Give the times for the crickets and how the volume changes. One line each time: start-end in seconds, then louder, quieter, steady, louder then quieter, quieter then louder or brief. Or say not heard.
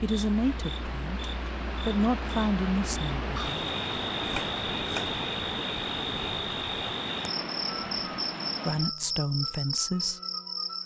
0.0-10.8 louder.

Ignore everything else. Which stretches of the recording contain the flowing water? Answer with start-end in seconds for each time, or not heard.
0.0-8.9.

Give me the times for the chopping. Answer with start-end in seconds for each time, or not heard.
4.2-5.2.